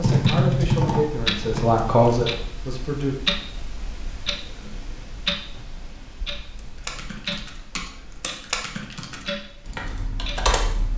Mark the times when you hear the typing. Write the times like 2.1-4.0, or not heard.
0.0-2.4, 6.5-10.9.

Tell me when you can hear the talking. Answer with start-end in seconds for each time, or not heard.
0.0-3.1.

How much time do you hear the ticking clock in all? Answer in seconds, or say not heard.
11 s.